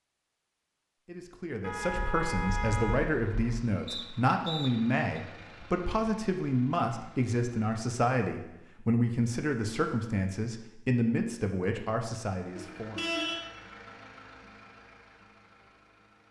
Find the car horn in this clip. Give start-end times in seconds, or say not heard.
1.6-3.6, 12.6-13.4.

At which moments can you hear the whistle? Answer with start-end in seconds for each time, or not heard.
3.9-5.2.